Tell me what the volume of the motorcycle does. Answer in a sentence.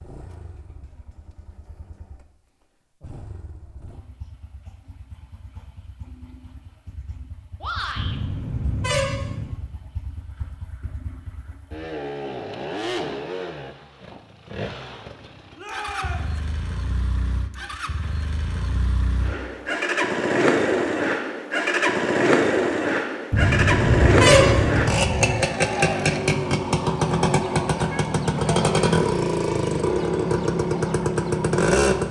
The loudness of the motorcycle goes up.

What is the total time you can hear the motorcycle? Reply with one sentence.
You can hear the motorcycle for 32 seconds altogether.